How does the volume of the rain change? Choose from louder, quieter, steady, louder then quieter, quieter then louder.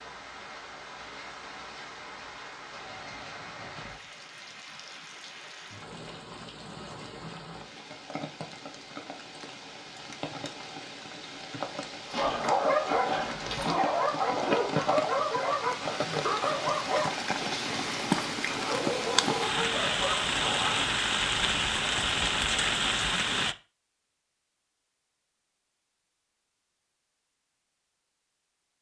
louder.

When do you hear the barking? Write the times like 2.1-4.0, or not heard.
12.1-20.9.